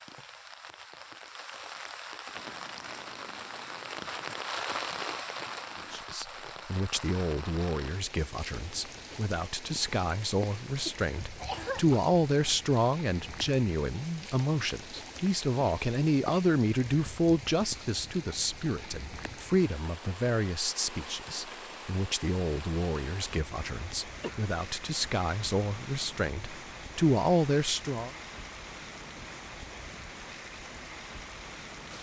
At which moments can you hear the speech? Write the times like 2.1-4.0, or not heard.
5.9-28.1.